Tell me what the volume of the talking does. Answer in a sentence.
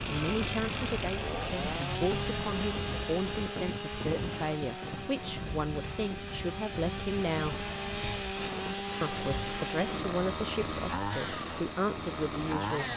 The loudness of the talking stays about the same.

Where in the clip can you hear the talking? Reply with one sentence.
You can hear the talking from 0.1 to 7.7 s and from 9.0 to 12.9 s.